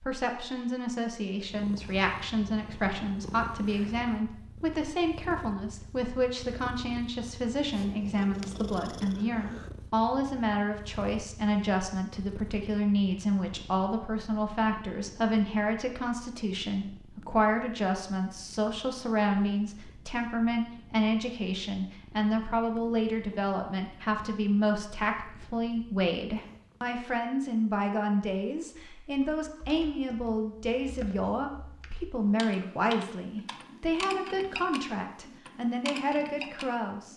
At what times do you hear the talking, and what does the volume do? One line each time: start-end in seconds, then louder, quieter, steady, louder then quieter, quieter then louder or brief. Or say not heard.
0.0-37.1 steady.